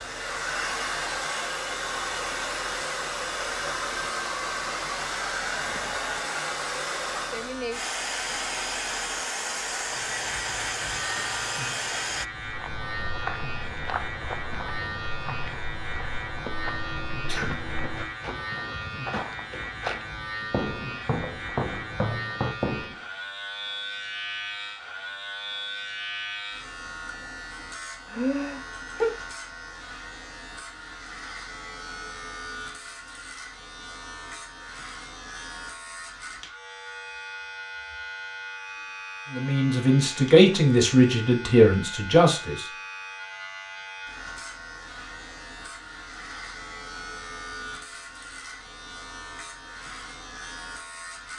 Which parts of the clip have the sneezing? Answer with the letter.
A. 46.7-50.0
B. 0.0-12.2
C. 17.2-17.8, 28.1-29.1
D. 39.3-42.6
C.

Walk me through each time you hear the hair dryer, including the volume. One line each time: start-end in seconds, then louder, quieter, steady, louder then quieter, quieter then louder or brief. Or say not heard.
0.0-12.2 steady.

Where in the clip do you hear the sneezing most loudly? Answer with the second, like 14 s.
29 s.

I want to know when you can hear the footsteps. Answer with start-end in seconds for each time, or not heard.
12.3-23.0.